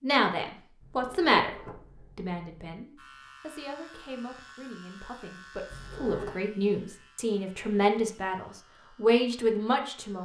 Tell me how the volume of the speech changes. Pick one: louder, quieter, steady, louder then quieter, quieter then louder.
quieter then louder.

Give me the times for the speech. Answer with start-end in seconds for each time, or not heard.
0.0-10.2.